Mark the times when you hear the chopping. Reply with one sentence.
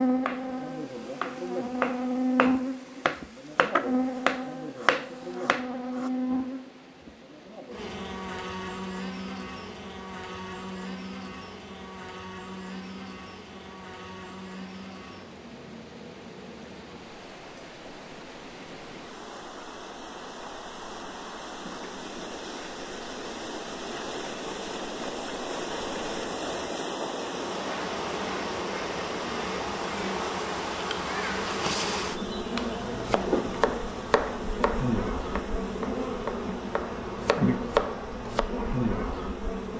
You can hear the chopping from 0.2 to 6.1 s and from 32.5 to 38.5 s.